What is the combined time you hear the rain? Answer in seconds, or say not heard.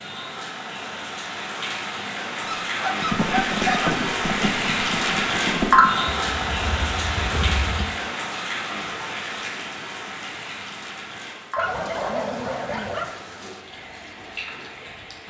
15 s.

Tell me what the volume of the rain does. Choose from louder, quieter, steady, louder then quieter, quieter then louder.
louder then quieter.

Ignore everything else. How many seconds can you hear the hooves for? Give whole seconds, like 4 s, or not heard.
5 s.